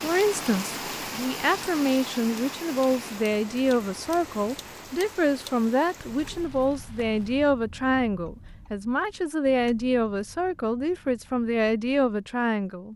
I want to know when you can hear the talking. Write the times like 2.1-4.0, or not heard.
0.0-12.9.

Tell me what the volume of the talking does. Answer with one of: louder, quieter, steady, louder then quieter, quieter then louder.
steady.